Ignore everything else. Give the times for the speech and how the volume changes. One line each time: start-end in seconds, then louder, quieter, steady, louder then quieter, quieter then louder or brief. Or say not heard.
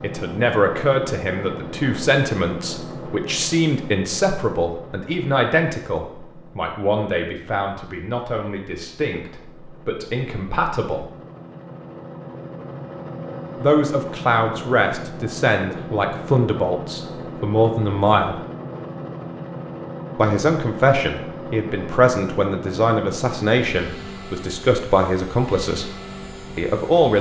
0.0-11.1 quieter
13.6-18.4 steady
20.1-25.9 steady
26.6-27.1 brief.